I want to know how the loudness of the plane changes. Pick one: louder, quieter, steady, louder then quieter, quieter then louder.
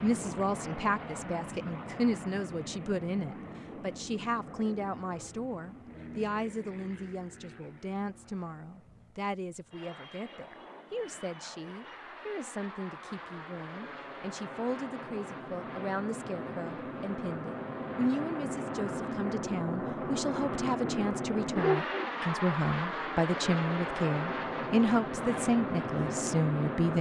quieter then louder.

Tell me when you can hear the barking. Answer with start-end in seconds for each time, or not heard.
20.8-22.1.